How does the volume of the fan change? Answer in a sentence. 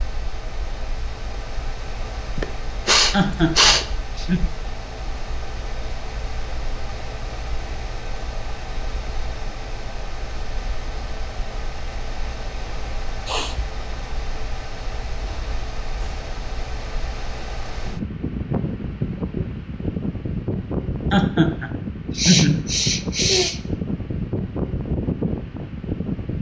The volume of the fan goes up.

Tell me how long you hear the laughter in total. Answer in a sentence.
You can hear the laughter for 3 seconds altogether.